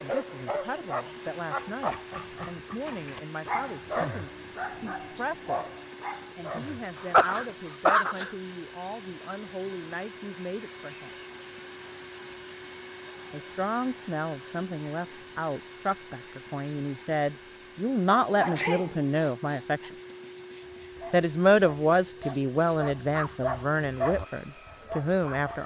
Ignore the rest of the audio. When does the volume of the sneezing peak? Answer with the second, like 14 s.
7 s.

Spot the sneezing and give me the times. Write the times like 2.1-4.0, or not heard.
7.0-8.3, 18.4-19.9.